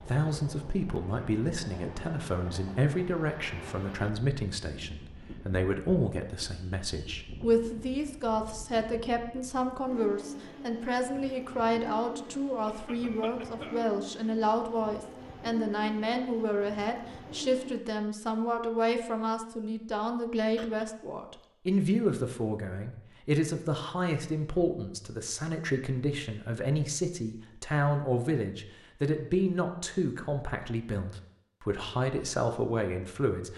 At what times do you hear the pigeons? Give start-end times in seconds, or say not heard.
not heard.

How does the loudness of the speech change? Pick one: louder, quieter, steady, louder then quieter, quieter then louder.
steady.